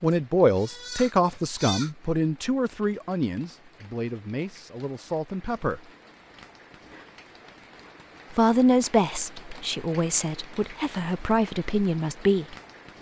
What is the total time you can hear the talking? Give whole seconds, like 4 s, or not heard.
10 s.